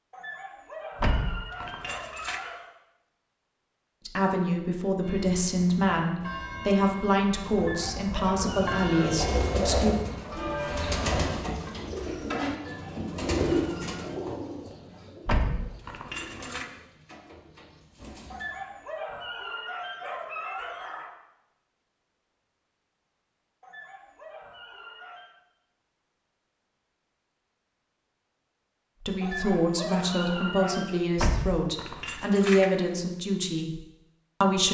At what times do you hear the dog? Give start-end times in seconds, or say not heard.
0.1-2.7, 7.5-9.3, 12.6-14.2, 18.3-21.1, 23.6-25.4, 29.2-31.0.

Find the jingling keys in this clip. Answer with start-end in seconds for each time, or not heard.
1.0-2.4, 15.2-16.6, 31.1-32.7.